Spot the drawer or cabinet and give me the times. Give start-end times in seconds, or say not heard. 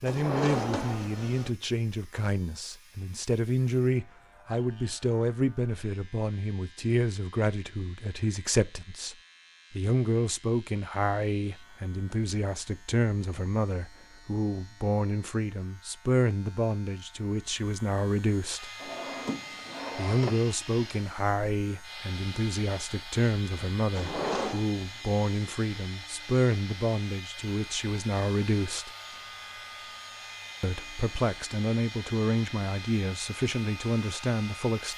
0.1-1.5, 18.8-20.4, 23.9-24.6.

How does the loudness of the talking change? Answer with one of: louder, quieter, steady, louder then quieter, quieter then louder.
steady.